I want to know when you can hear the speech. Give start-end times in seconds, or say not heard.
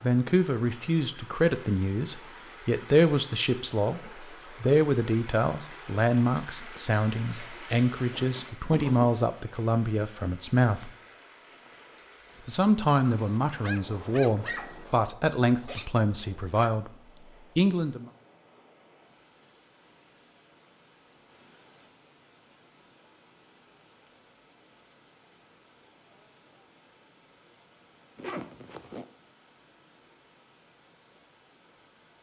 0.0-10.9, 12.4-16.9, 17.6-18.1.